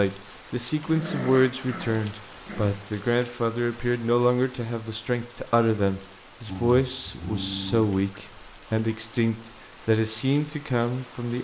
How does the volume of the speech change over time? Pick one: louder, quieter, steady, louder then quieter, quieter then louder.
steady.